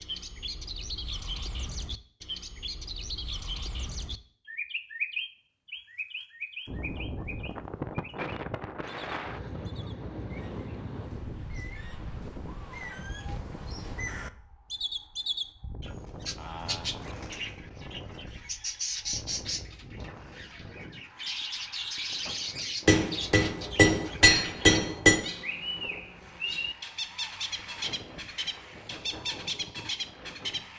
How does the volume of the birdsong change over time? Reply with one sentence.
The loudness of the birdsong goes down, then up.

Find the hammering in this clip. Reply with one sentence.
The hammering can be heard from 22.9 to 25.2 s.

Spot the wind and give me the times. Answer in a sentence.
The wind can be heard from 6.7 to 30.7 s.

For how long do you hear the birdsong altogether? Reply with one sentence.
The birdsong can be heard for 31 seconds in total.